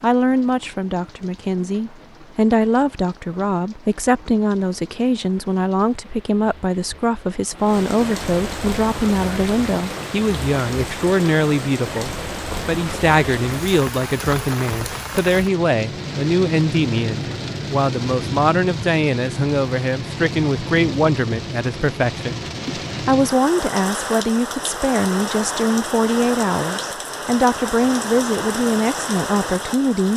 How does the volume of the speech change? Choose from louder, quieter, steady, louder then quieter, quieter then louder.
steady.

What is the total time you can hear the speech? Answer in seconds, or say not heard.
30 s.